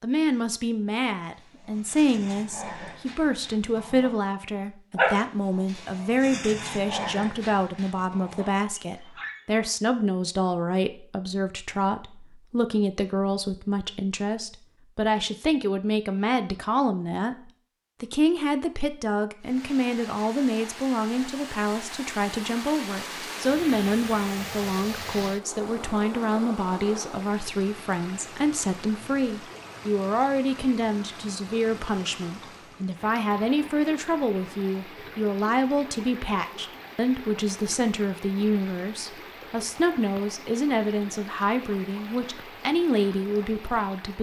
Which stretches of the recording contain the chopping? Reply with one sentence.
The chopping can't be heard in this clip.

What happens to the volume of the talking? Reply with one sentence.
The volume of the talking stays about the same.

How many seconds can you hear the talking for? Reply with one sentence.
You can hear the talking for 44 seconds altogether.